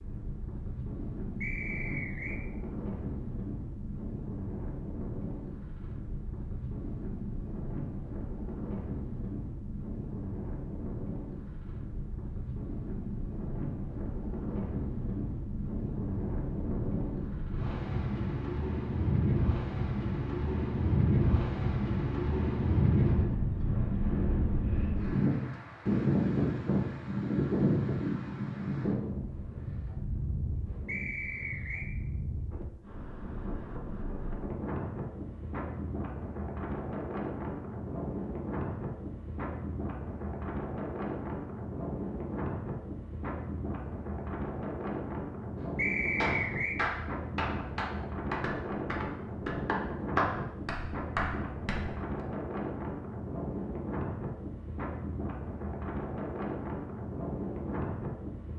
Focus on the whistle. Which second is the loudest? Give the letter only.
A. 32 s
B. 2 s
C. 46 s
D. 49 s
C.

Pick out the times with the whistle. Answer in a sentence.
The whistle can be heard from 1.4 to 2.4 s, from 30.9 to 31.9 s and from 45.8 to 46.8 s.